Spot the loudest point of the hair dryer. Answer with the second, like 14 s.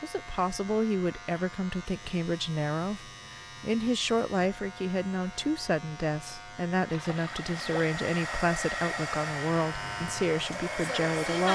11 s.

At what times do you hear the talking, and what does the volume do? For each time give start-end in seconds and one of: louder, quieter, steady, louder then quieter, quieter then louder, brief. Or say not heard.
0.0-11.5 steady.